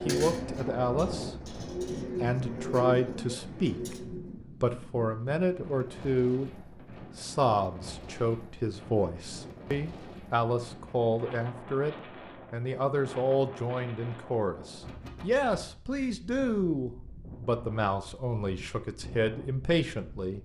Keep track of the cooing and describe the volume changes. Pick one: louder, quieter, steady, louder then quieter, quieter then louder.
louder then quieter.